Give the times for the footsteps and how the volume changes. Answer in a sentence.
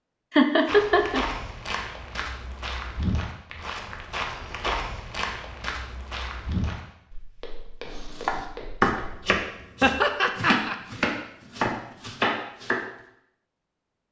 You can hear the footsteps from 0.7 to 9.3 s, getting quieter.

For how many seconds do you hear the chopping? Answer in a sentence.
You can hear the chopping for 5 seconds altogether.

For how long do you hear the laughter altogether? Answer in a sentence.
You can hear the laughter for 2 seconds altogether.